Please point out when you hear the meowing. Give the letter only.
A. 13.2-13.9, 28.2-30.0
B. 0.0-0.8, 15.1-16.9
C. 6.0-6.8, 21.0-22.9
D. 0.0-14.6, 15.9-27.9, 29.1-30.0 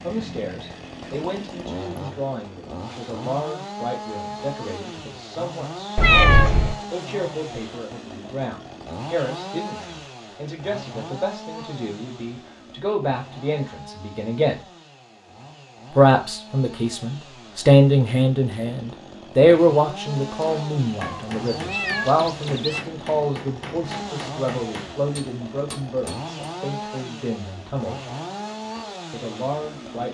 C.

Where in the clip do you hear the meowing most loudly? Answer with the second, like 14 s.
6 s.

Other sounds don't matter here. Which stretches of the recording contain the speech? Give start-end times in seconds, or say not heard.
0.0-14.6, 15.9-27.9, 29.1-30.0.